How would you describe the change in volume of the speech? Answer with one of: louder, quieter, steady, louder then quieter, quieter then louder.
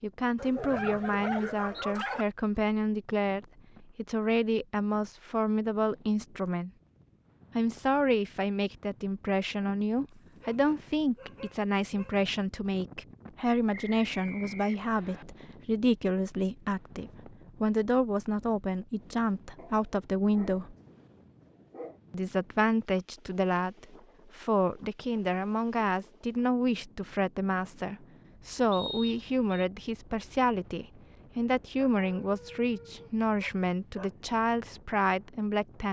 steady.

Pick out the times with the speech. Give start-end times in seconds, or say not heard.
0.0-6.7, 7.5-20.8, 22.1-35.8.